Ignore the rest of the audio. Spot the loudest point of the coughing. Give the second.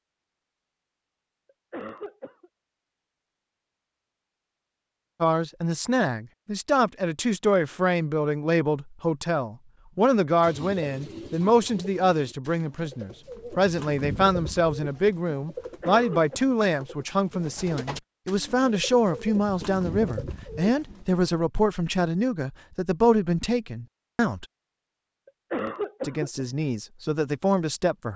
26 s.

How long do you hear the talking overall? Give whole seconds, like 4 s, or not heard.
21 s.